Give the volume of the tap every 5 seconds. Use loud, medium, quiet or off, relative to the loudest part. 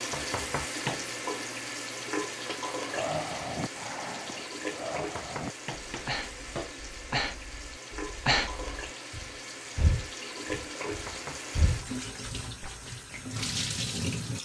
loud, medium, loud.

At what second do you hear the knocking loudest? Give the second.
1 s.